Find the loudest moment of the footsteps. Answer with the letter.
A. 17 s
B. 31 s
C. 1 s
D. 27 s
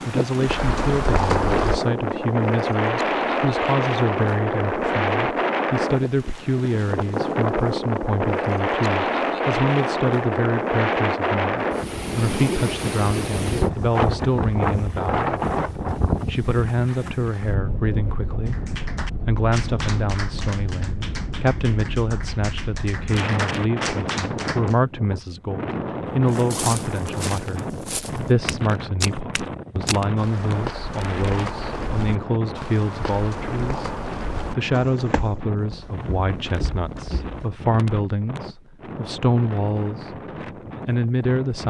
C.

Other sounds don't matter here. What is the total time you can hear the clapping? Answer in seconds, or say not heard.
6 s.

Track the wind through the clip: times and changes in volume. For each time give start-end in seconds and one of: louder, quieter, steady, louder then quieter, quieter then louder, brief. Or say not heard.
0.0-41.6 quieter.